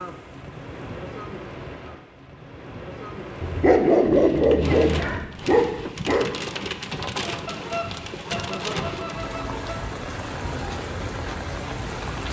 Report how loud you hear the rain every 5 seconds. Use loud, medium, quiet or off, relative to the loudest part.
medium, loud, loud.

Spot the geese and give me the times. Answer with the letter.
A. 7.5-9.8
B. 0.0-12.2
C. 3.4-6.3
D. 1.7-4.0
A.